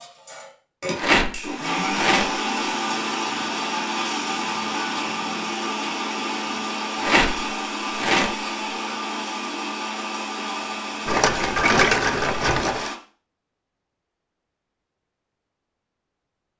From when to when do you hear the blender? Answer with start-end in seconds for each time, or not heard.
0.0-12.9.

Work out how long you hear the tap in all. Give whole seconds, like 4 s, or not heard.
not heard.